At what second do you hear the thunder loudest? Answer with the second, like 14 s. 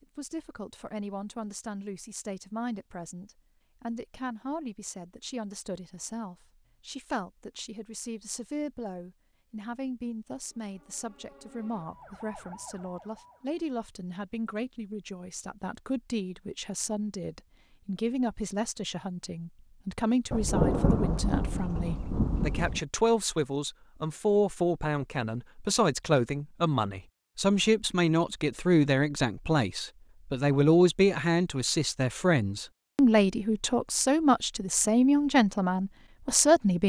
21 s.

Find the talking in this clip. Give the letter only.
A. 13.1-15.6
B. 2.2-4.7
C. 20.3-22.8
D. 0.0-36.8
D.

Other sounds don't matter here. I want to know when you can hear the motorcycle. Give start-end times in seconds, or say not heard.
not heard.